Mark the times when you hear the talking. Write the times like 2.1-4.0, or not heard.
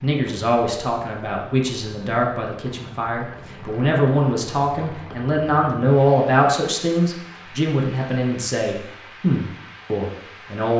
0.0-10.7.